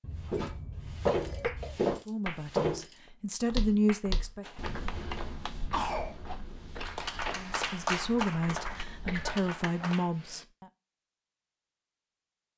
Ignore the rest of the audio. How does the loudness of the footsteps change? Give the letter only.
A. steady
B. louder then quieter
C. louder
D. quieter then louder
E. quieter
E.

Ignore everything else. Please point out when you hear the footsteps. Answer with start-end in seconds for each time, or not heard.
0.3-9.3.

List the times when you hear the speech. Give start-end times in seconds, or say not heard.
2.0-4.5, 7.3-10.7.